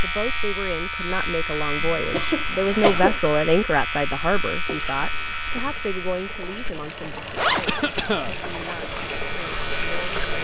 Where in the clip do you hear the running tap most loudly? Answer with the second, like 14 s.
10 s.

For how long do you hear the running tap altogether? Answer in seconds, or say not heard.
6 s.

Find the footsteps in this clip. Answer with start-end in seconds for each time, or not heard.
not heard.